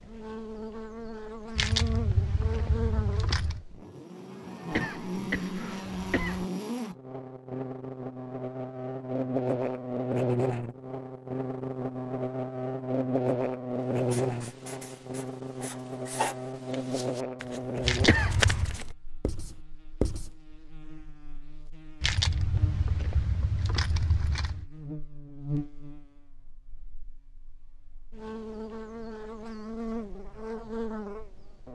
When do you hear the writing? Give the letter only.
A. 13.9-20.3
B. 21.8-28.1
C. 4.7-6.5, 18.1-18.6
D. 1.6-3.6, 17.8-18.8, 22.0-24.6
A.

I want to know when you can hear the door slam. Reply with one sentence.
You can't hear the door slam here.